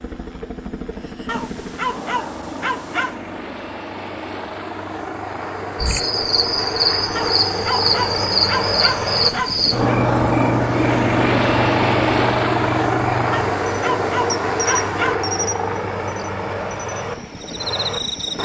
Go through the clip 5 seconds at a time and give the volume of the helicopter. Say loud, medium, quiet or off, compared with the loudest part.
quiet, medium, loud, medium.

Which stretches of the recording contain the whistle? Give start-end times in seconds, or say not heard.
not heard.